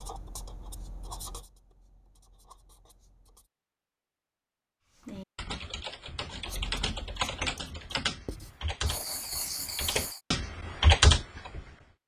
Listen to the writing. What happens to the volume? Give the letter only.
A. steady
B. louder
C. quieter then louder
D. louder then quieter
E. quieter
C.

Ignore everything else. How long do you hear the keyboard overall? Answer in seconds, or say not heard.
7 s.